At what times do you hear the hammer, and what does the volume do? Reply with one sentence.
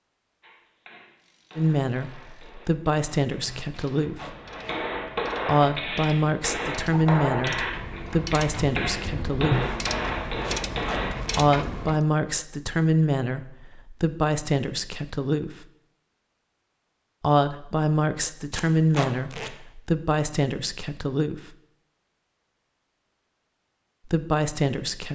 You can hear the hammer from 0.4 to 11.2 s, getting louder.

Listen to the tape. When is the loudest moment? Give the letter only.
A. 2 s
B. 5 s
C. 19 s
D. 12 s
C.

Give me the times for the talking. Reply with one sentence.
You can hear the talking from 1.6 to 4.3 s, from 5.5 to 9.8 s, from 11.3 to 15.7 s, from 17.2 to 21.6 s and from 24.1 to 25.1 s.